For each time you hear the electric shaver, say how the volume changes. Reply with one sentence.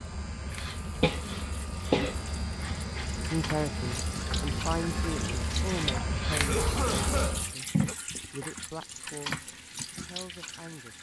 The electric shaver can be heard from 0.0 to 7.5 s, getting louder.